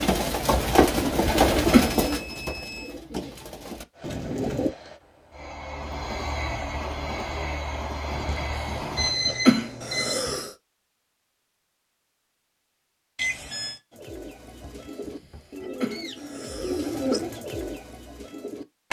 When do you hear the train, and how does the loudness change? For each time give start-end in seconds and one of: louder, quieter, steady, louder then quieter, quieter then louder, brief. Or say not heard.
3.9-9.2 louder.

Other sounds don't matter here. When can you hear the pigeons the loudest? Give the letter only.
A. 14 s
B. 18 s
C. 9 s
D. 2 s
D.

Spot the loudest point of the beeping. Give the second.
9 s.